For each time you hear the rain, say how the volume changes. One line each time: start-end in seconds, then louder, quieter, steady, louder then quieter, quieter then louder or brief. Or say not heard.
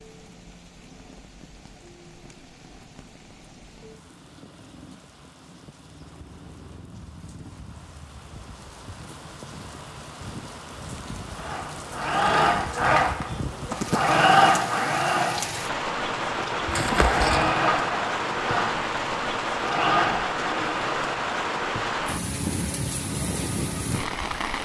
0.0-24.6 louder.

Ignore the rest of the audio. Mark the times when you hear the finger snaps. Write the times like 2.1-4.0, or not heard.
not heard.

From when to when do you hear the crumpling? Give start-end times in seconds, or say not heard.
16.6-17.6.